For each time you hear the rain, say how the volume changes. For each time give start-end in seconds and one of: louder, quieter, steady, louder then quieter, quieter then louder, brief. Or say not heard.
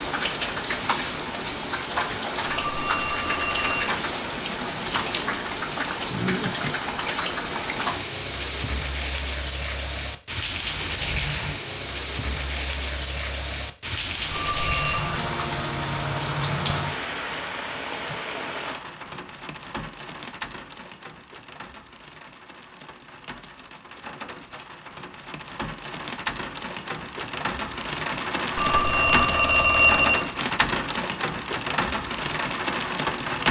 0.0-33.4 quieter then louder.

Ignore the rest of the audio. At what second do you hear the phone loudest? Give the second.
30 s.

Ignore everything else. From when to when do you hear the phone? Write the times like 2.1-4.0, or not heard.
2.5-4.0, 14.3-15.2, 28.6-30.2.